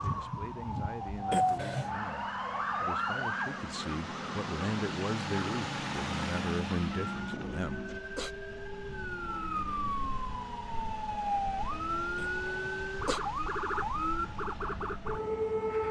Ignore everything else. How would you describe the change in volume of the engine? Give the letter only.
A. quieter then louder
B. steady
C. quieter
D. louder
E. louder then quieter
E.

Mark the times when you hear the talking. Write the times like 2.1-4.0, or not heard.
0.0-7.8.